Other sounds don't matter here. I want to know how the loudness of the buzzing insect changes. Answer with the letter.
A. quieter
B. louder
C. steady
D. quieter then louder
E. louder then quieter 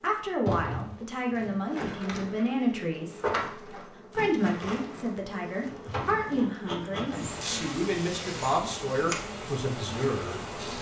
C.